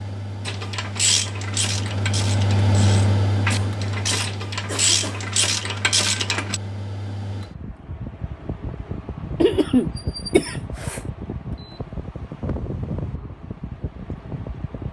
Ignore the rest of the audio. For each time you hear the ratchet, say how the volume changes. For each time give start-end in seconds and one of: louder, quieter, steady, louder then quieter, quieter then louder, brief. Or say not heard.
0.5-6.6 quieter then louder.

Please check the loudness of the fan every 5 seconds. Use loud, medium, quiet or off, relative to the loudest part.
loud, medium, medium.